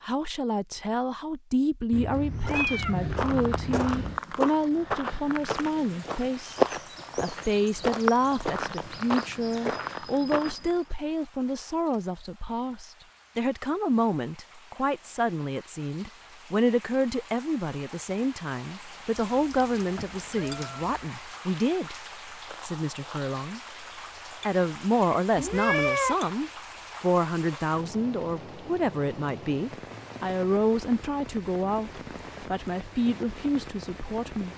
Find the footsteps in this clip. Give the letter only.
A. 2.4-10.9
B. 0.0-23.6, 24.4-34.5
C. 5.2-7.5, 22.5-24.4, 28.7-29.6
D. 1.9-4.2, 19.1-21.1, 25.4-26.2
A.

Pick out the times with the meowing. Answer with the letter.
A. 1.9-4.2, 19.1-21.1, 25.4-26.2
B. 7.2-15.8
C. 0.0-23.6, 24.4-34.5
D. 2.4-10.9
A.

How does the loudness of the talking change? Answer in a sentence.
The volume of the talking stays about the same.